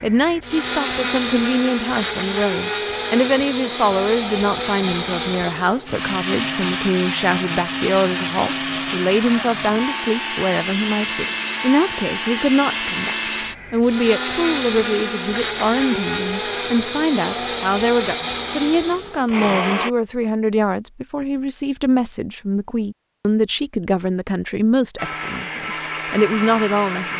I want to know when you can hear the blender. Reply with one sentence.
The blender can be heard from 0.0 to 19.9 s and from 24.9 to 27.1 s.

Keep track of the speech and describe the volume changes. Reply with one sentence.
The volume of the speech stays about the same.